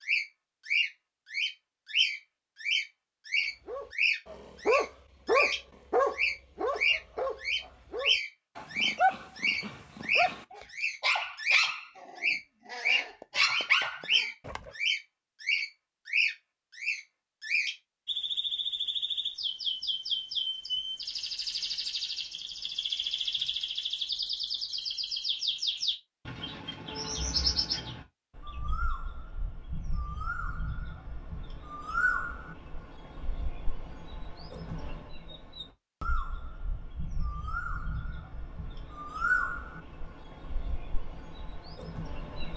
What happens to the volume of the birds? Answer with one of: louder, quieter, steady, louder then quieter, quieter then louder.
quieter.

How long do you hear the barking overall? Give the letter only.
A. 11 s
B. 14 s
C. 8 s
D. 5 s
A.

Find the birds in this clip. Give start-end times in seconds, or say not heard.
0.0-42.5.